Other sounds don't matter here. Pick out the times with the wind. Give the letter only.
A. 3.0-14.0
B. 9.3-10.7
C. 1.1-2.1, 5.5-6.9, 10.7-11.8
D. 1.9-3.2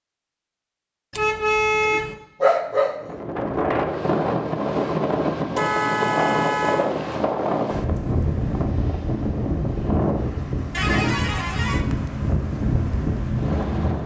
A.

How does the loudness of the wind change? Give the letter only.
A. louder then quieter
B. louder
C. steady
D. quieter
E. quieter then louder
C.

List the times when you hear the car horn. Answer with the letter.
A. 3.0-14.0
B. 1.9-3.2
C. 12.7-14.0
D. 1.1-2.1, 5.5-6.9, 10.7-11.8
D.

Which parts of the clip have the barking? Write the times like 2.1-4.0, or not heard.
1.9-3.2.